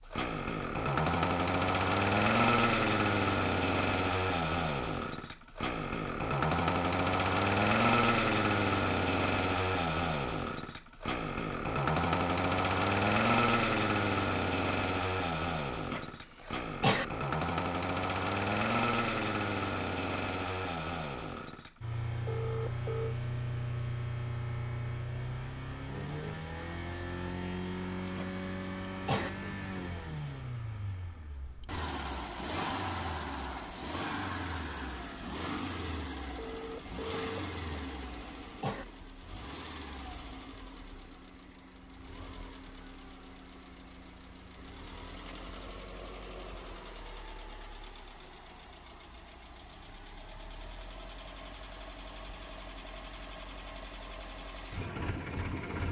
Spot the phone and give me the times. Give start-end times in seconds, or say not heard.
22.2-23.1, 36.4-37.4.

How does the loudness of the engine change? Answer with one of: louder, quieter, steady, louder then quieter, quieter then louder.
quieter.